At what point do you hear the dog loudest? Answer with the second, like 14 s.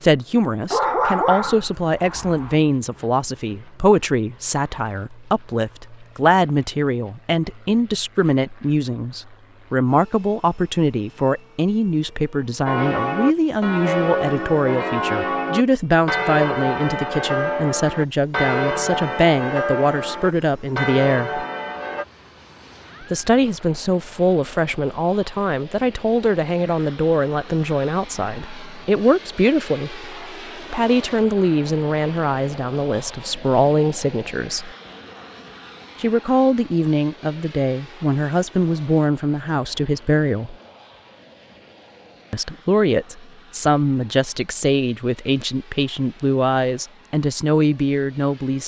1 s.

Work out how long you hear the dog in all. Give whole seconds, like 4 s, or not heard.
2 s.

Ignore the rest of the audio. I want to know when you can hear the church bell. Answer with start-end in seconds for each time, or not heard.
12.7-22.1.